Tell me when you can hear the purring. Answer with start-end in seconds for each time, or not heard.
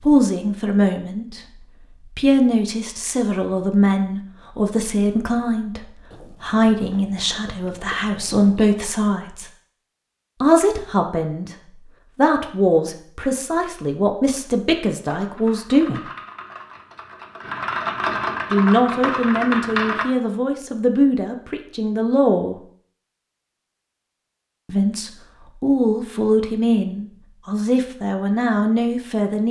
not heard.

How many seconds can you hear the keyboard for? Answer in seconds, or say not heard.
5 s.